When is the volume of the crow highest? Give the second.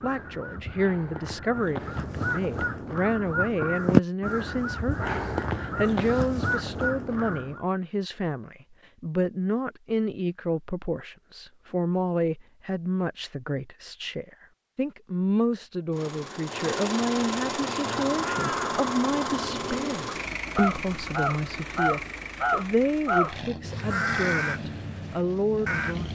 4 s.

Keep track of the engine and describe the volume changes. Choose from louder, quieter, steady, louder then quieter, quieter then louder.
quieter.